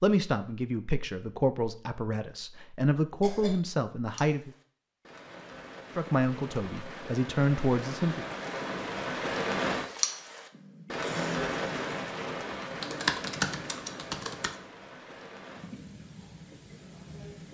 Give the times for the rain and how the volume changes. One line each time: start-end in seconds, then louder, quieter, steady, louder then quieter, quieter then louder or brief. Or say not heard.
4.1-17.4 louder then quieter.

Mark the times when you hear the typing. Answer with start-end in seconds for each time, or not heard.
12.8-14.6.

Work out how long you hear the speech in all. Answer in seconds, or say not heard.
7 s.